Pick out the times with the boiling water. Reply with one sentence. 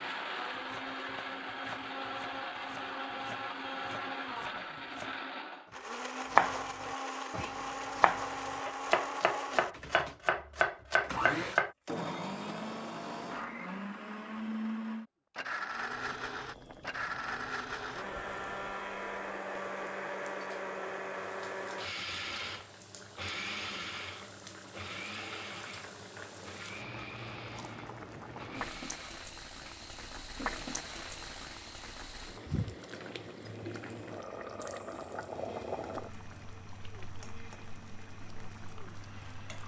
The boiling water can be heard from 15.7 to 39.6 s.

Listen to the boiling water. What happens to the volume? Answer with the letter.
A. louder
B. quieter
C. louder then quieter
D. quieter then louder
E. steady
A.